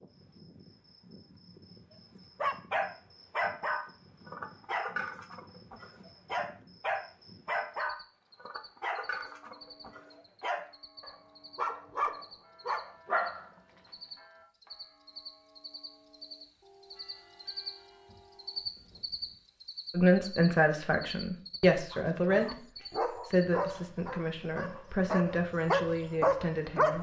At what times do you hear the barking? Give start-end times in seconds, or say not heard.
2.4-13.5, 21.9-26.9.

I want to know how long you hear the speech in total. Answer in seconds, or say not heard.
7 s.